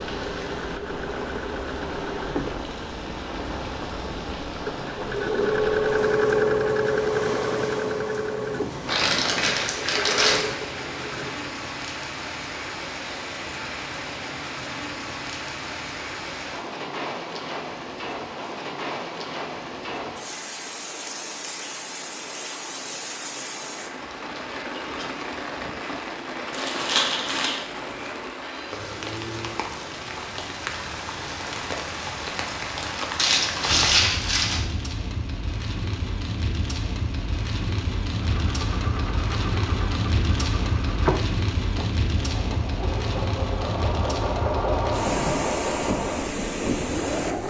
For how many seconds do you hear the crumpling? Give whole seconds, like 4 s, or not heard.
4 s.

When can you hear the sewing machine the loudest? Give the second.
6 s.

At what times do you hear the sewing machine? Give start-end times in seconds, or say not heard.
0.0-11.4, 38.1-47.4.